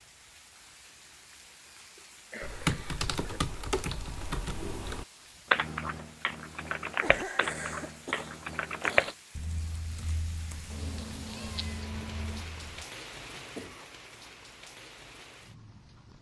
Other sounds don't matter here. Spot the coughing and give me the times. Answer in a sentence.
You can hear the coughing from 1.9 to 3.4 s, from 7.0 to 9.2 s and from 13.2 to 13.9 s.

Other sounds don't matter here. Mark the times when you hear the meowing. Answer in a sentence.
You can hear the meowing from 10.7 to 12.4 s.